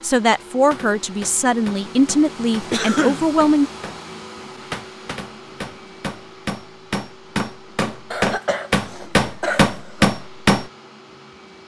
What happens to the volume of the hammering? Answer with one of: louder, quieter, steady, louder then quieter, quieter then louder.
louder.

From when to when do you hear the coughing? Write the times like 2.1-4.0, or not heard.
2.7-3.2, 8.1-10.1.